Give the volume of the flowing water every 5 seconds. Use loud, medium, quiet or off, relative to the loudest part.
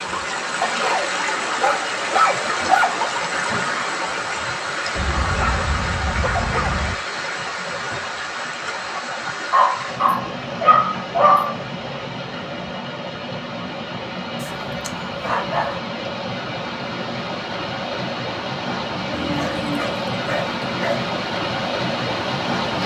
loud, loud, medium, loud, loud.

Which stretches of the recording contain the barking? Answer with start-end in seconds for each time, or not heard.
0.6-2.9, 5.0-7.0, 9.5-11.6, 14.4-15.8, 19.1-21.1.